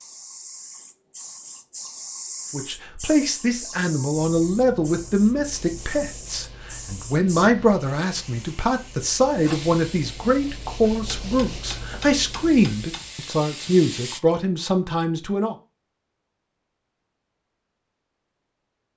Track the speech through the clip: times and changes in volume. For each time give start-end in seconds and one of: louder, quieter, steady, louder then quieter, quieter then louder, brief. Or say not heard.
2.5-15.6 steady.